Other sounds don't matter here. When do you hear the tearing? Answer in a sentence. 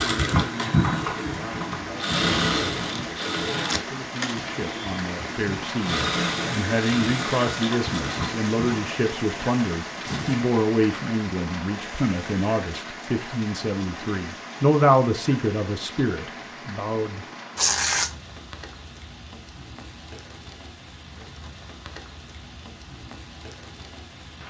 The tearing can be heard from 3.6 to 4.5 s, from 9.9 to 10.4 s and from 17.6 to 18.1 s.